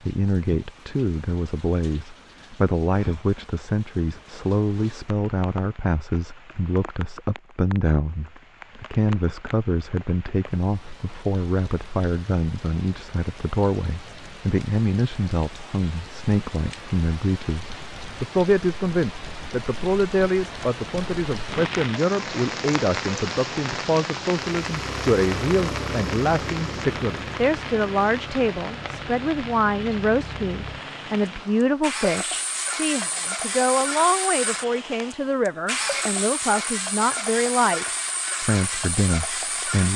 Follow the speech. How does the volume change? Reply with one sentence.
The loudness of the speech stays about the same.